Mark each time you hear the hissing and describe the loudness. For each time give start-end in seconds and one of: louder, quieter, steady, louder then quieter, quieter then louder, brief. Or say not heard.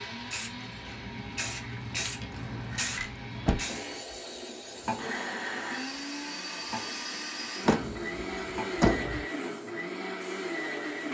0.0-10.9 quieter.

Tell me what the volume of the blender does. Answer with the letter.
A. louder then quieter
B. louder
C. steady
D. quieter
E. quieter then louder
B.